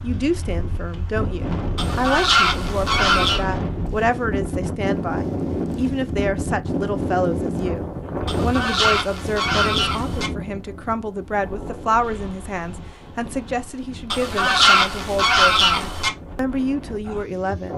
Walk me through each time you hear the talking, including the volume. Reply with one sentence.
The talking can be heard from 0.0 to 17.7 s, at a steady volume.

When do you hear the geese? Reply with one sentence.
You can hear the geese from 1.8 to 3.5 s, from 8.2 to 10.3 s and from 14.1 to 16.1 s.